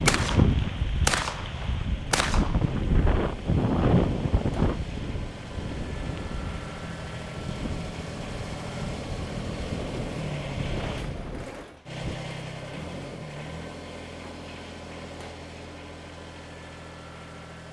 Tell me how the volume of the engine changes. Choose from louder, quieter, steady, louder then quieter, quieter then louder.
louder then quieter.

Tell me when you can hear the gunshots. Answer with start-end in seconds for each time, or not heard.
0.1-2.8.